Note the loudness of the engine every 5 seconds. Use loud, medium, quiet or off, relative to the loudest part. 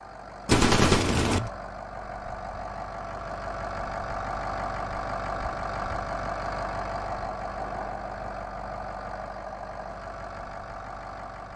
loud, loud, medium.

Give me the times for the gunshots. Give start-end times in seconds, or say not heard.
0.5-1.5.